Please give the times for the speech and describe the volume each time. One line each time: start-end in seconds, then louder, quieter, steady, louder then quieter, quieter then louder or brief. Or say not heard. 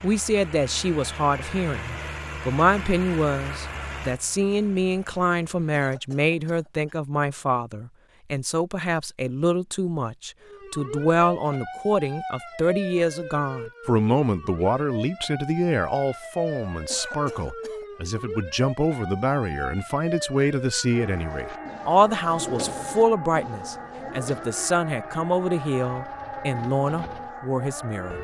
0.0-28.1 steady.